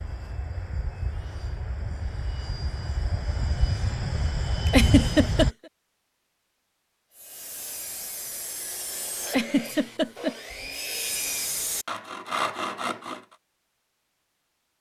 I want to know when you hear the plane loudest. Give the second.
5 s.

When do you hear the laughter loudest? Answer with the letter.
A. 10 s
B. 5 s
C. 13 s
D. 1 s
B.